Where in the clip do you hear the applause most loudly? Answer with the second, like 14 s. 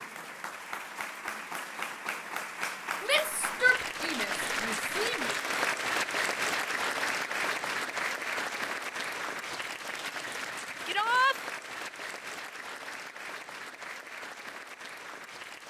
6 s.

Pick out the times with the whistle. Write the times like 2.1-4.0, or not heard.
not heard.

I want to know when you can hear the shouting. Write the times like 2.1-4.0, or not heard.
3.0-5.3, 10.8-11.4.